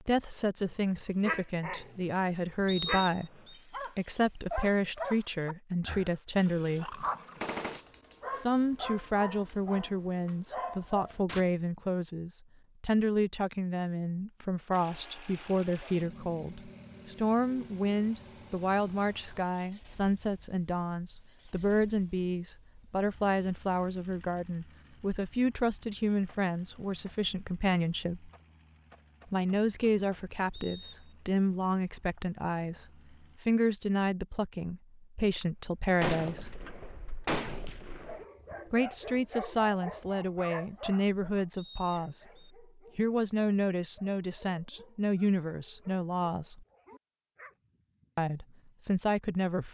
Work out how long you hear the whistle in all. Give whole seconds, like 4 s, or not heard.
3 s.